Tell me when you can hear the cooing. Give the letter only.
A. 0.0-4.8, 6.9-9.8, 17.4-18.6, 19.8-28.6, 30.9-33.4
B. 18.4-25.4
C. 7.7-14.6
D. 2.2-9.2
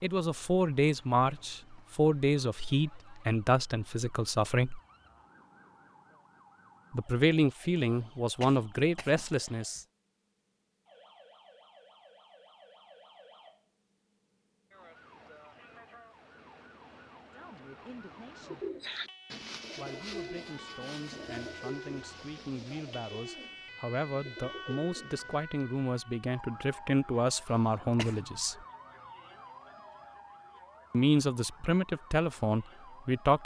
B.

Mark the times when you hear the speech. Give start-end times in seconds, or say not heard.
0.0-4.8, 6.9-9.8, 17.4-18.6, 19.8-28.6, 30.9-33.4.